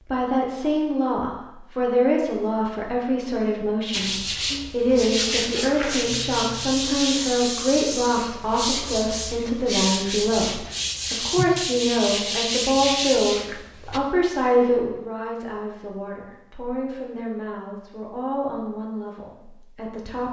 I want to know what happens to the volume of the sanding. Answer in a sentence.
The volume of the sanding stays about the same.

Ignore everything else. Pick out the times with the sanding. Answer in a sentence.
The sanding can be heard from 3.9 to 14.0 s.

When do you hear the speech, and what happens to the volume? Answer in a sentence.
You can hear the speech from 0.0 to 20.2 s, getting quieter.